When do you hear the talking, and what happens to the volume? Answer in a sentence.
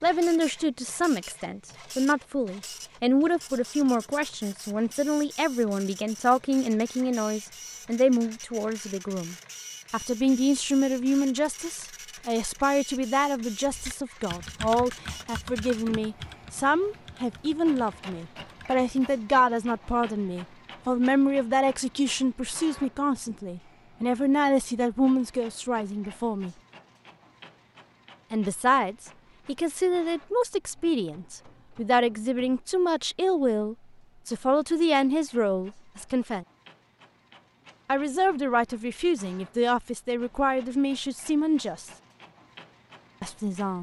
You can hear the talking from 0.0 to 26.6 s, at a steady volume; from 28.3 to 36.5 s, at a steady volume; from 37.9 to 41.9 s, at a steady volume; and briefly from 43.2 to 43.7 s.